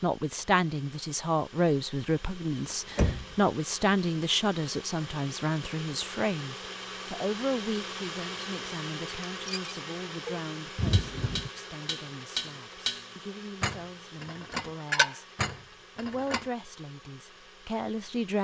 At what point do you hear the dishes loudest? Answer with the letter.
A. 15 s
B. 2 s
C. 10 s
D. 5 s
A.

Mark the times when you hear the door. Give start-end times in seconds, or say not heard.
2.5-3.4, 10.8-11.5.